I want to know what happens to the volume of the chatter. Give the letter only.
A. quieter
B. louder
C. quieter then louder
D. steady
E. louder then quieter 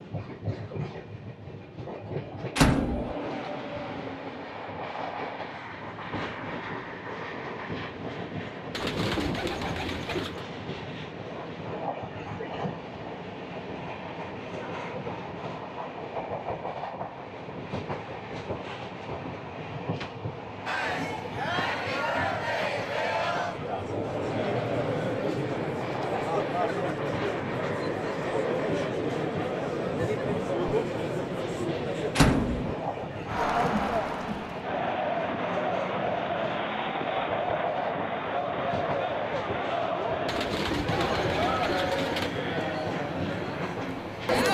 D.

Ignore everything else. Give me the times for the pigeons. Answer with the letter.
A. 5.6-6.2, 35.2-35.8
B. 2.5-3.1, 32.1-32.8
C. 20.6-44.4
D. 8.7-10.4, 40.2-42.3
D.